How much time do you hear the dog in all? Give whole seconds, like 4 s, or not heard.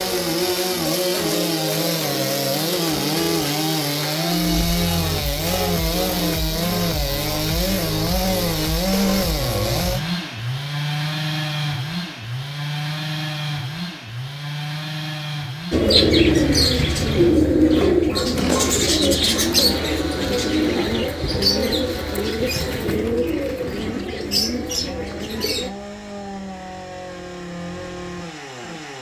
not heard.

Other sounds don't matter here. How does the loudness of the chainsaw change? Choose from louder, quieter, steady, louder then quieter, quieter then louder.
quieter.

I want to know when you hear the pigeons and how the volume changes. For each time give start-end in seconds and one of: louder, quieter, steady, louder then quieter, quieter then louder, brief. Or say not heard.
15.7-25.7 quieter.